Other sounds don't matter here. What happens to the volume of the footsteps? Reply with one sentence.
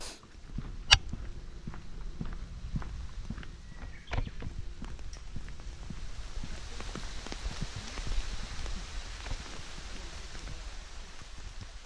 The loudness of the footsteps goes down.